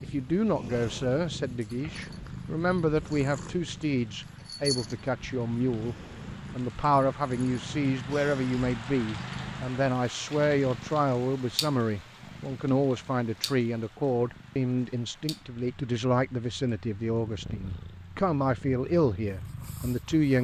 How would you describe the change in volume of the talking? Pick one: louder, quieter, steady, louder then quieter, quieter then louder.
steady.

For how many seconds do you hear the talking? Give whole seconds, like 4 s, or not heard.
20 s.